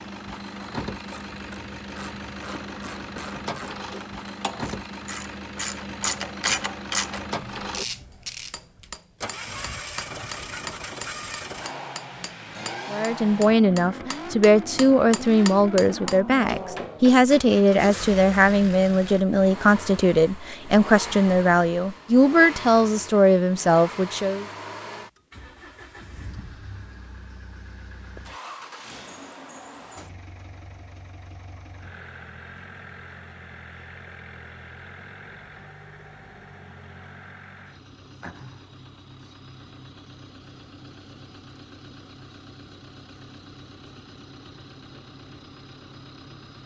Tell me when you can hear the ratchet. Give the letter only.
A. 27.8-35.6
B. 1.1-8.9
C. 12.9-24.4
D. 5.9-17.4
B.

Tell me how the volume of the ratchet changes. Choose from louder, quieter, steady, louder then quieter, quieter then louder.
louder then quieter.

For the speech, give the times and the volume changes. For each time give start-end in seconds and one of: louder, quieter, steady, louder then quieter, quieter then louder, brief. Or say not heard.
12.9-24.4 steady.